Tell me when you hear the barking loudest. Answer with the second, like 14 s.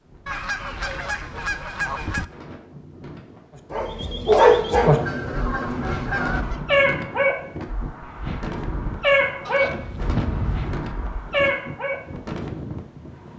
4 s.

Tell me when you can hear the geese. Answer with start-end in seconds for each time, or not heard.
0.2-2.2, 4.8-6.7, 9.4-10.8.